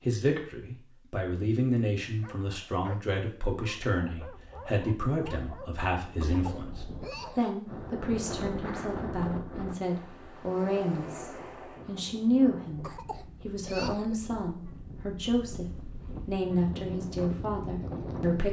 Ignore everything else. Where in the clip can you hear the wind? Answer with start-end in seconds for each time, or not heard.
7.7-18.4.